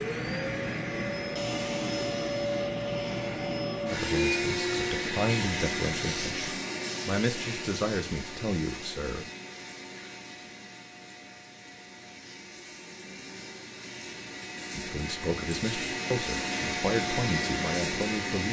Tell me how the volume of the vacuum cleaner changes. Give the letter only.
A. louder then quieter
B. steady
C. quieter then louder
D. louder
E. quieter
C.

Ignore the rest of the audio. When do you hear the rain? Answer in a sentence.
The rain can't be heard in this clip.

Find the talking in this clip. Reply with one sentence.
You can hear the talking from 3.9 to 9.3 s and from 14.8 to 18.4 s.